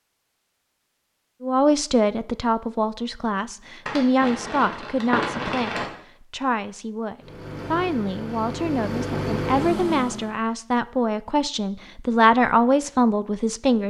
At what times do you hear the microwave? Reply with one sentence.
You can hear the microwave from 7.2 to 10.3 s.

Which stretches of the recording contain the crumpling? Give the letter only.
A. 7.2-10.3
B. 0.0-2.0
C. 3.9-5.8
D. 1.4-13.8
C.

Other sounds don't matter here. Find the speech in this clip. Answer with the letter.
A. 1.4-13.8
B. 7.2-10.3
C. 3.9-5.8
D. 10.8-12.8
A.